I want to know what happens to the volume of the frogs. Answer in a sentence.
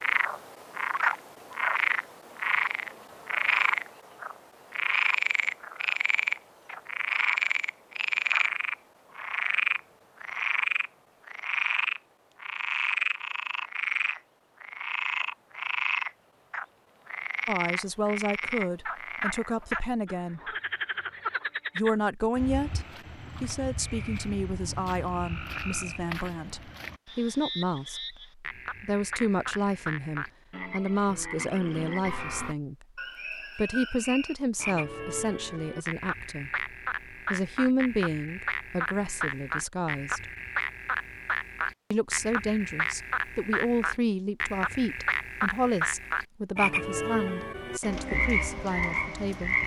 The loudness of the frogs goes down, then up.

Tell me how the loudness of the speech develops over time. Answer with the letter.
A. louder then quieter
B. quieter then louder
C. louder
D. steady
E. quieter
D.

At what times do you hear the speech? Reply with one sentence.
You can hear the speech from 17.4 to 20.6 s, from 21.8 to 32.9 s, from 33.5 to 36.6 s, from 37.3 to 40.3 s and from 41.9 to 49.6 s.